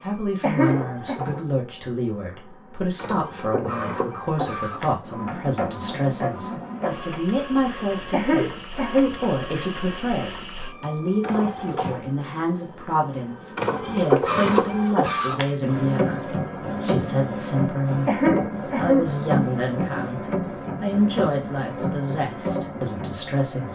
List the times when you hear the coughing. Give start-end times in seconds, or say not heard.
0.4-1.1, 8.1-9.2, 18.1-19.1.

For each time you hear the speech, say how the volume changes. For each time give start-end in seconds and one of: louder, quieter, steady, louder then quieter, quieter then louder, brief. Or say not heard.
0.0-23.7 steady.